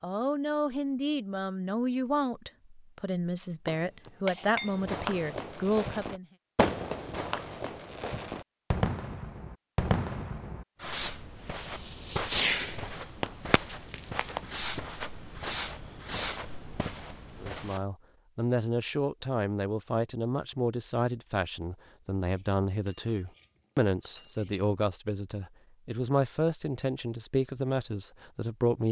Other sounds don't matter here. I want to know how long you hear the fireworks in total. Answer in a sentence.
You can hear the fireworks for 12 seconds altogether.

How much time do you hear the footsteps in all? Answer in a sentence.
The footsteps can be heard for 7 seconds in total.